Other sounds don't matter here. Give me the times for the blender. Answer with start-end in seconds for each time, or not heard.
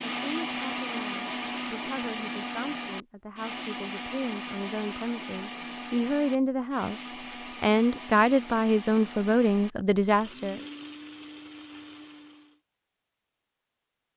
0.0-12.6.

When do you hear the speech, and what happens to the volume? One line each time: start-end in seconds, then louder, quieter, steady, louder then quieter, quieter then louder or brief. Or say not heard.
0.2-10.6 louder.